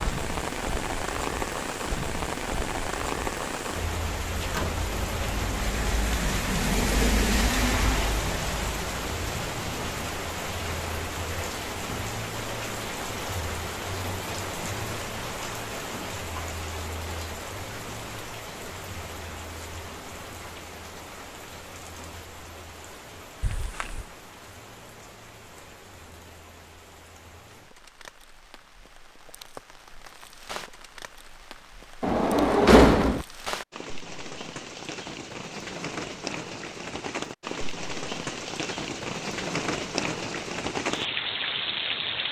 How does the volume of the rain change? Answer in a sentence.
The volume of the rain goes down, then up.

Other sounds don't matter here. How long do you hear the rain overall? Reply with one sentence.
You can hear the rain for 42 seconds altogether.